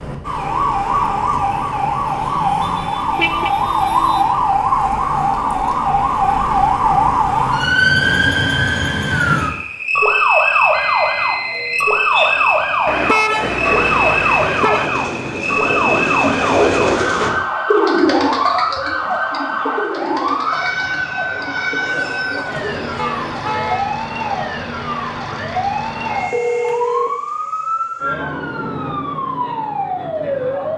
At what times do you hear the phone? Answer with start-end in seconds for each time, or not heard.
10.7-11.9, 26.1-27.2.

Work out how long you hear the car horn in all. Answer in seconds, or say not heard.
4 s.